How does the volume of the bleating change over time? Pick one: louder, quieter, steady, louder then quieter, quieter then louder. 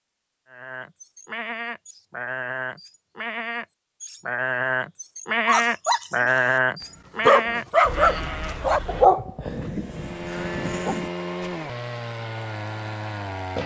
louder then quieter.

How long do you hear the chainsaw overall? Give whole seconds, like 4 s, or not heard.
4 s.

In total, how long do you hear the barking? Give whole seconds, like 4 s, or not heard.
5 s.